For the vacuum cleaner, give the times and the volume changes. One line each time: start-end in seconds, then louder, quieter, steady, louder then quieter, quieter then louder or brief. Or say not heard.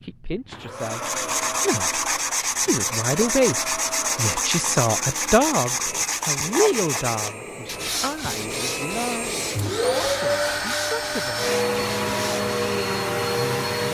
0.0-13.8 louder.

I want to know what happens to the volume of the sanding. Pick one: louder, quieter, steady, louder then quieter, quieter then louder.
quieter.